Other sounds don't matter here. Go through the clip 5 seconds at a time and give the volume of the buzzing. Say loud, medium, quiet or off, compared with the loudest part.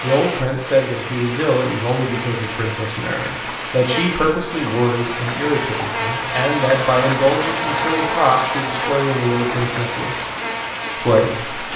medium, loud, medium.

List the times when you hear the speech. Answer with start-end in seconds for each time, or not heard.
0.0-10.2, 10.9-11.7.